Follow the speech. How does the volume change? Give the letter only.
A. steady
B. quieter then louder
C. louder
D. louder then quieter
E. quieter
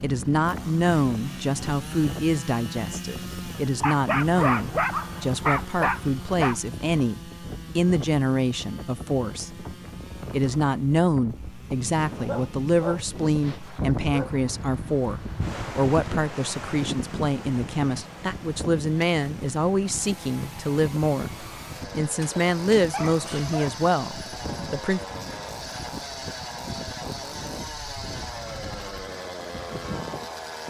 A.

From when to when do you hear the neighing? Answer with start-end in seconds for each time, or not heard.
not heard.